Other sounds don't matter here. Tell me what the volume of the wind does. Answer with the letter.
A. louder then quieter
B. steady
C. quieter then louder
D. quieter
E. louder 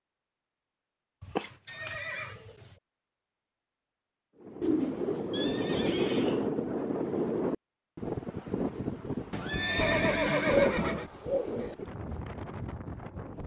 D.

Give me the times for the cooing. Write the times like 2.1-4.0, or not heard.
1.2-2.6, 4.6-6.5, 10.4-11.8.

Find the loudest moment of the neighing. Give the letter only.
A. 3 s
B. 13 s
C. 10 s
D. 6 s
C.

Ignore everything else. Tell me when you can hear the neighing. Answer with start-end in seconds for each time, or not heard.
1.6-2.4, 5.3-6.5, 9.3-11.1.